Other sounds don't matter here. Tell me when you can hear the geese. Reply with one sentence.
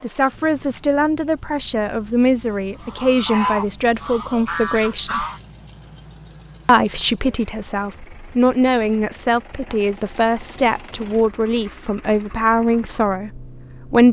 You can hear the geese from 2.8 to 5.4 s.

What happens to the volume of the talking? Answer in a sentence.
The volume of the talking stays about the same.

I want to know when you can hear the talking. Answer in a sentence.
You can hear the talking from 0.0 to 5.2 s and from 6.7 to 14.0 s.